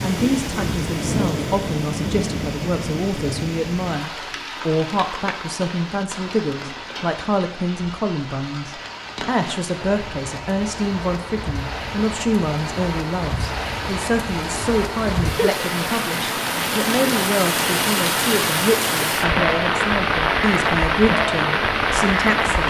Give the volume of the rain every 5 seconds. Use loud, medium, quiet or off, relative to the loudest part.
medium, quiet, medium, loud, loud.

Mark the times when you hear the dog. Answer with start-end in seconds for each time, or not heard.
not heard.